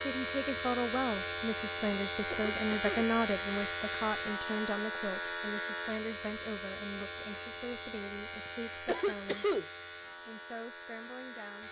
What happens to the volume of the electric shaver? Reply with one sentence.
The loudness of the electric shaver goes down.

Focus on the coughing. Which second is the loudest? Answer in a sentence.
The loudest moment of the coughing is at 9 seconds.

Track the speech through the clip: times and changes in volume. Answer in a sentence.
The speech can be heard from 0.0 to 9.6 s, getting quieter; and briefly from 10.2 to 11.6 s.